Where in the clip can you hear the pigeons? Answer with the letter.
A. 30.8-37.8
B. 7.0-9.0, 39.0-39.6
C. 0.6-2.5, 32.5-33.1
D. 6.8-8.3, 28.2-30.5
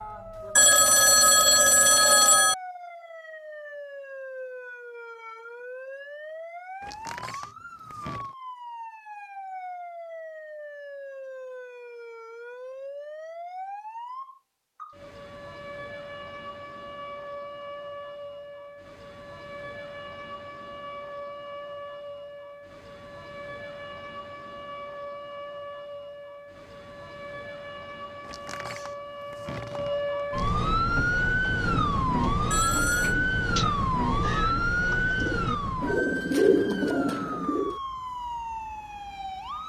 A.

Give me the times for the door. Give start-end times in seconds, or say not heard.
6.8-8.3, 28.2-30.5.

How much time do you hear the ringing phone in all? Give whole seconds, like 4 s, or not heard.
3 s.